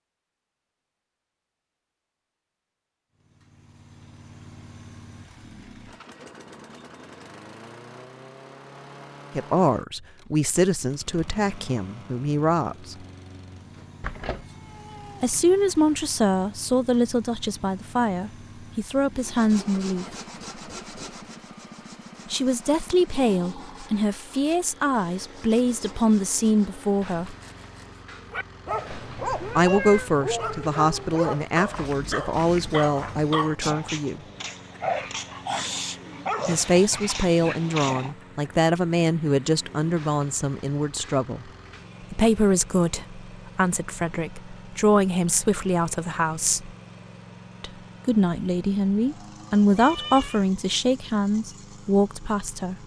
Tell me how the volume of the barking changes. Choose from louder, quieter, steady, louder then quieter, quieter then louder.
steady.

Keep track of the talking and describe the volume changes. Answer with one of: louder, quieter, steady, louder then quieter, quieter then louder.
steady.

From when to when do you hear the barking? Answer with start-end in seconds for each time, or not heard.
28.1-38.1.